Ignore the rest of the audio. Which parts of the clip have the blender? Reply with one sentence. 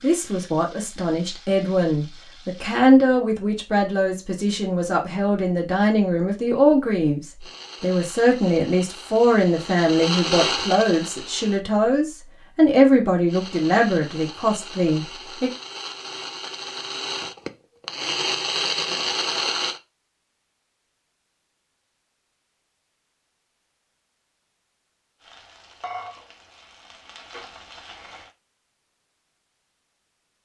The blender can be heard from 7.4 to 11.7 s and from 13.2 to 19.8 s.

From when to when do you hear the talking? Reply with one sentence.
You can hear the talking from 0.0 to 15.5 s.